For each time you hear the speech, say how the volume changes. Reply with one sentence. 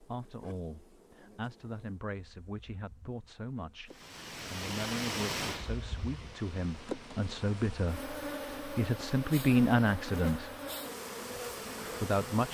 You can hear the speech from 0.0 to 10.5 s, getting louder; and briefly from 12.0 to 12.4 s.